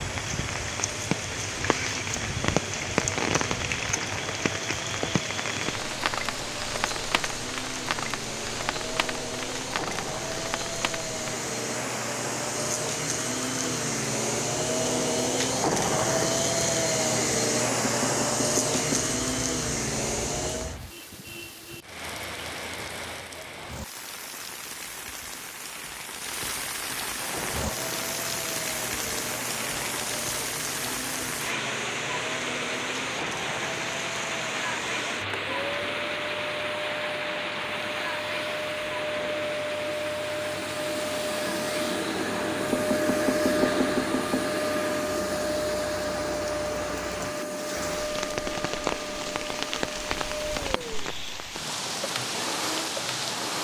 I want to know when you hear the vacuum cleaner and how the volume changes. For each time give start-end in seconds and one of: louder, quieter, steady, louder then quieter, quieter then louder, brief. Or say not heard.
0.0-20.8 louder
27.1-53.6 louder then quieter.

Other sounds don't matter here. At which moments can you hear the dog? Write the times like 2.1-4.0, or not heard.
not heard.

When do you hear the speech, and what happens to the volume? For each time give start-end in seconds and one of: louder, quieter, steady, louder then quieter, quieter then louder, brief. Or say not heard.
not heard.